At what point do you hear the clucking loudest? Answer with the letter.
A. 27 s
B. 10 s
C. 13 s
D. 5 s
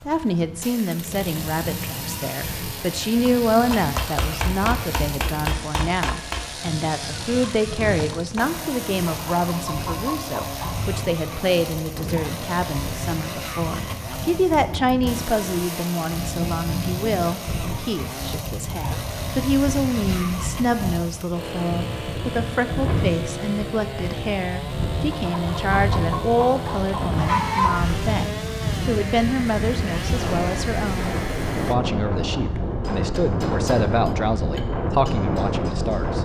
A.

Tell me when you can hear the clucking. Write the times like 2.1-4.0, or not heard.
9.1-10.8, 25.1-27.9.